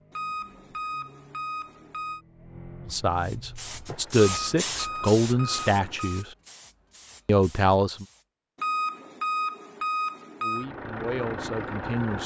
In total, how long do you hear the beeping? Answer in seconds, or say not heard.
6 s.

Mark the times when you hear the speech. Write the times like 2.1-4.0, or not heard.
2.9-6.3, 7.2-8.1, 10.4-12.2.